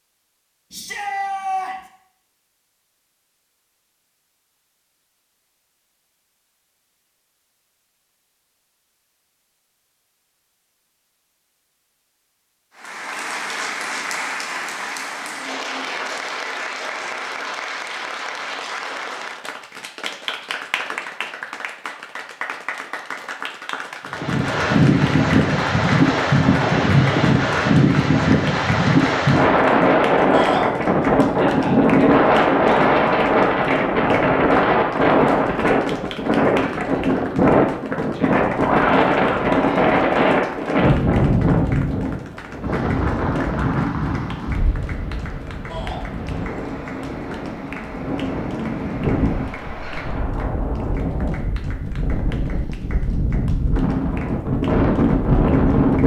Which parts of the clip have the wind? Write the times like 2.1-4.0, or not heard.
24.1-56.0.